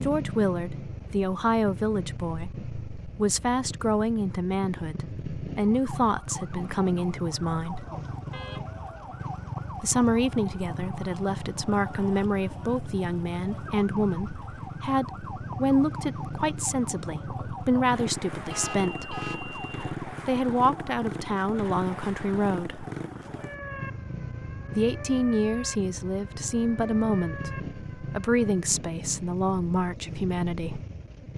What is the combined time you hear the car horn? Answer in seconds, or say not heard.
2 s.